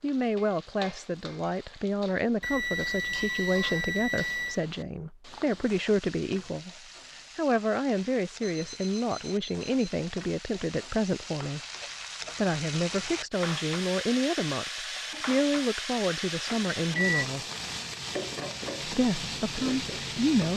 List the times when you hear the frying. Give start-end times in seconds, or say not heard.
0.0-20.5.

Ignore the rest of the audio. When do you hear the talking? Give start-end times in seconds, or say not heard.
0.0-6.7, 7.3-11.6, 12.3-17.4, 18.9-20.5.